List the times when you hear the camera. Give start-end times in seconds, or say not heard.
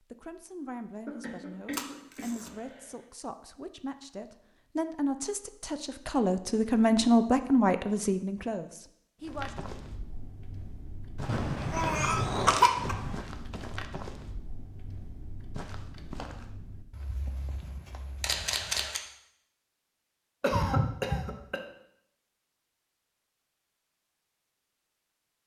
1.7-2.5, 11.2-13.2, 18.2-19.0.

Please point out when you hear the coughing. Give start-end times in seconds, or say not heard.
1.1-2.9, 11.2-12.9, 20.4-21.6.